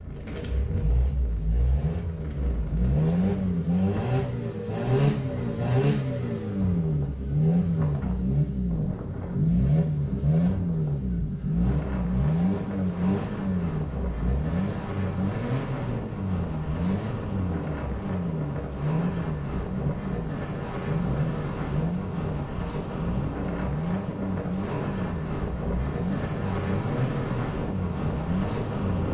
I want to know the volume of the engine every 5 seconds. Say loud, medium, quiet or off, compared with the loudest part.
loud, loud, loud, medium, medium, medium.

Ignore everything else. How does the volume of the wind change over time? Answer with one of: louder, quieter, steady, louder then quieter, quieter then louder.
louder.